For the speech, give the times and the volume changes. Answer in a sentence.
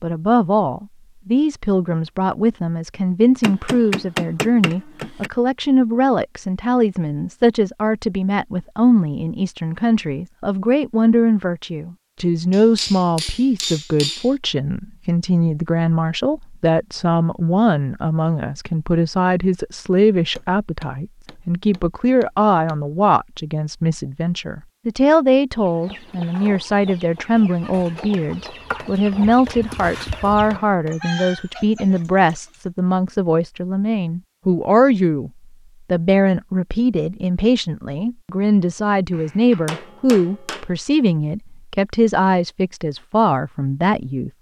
The speech can be heard from 0.0 to 44.3 s, at a steady volume.